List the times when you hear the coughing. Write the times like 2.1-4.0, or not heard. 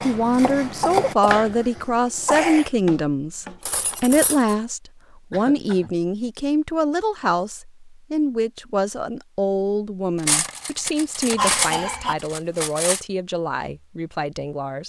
0.7-2.7, 5.3-6.0, 11.3-12.2.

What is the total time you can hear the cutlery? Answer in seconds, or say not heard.
4 s.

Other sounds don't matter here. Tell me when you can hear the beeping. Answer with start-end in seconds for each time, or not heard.
not heard.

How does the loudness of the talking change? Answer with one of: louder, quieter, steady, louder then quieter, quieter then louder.
quieter.